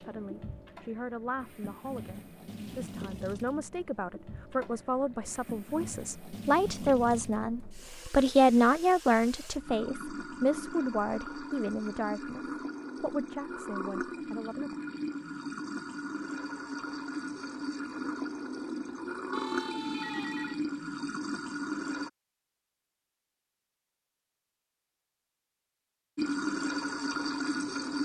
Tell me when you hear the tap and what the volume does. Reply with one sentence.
The tap can be heard from 0.0 to 22.1 s, getting louder; and briefly from 26.1 to 28.0 s.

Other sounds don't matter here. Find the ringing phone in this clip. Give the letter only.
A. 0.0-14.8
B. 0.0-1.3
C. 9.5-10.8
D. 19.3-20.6
D.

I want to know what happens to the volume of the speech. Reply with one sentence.
The volume of the speech goes up, then down.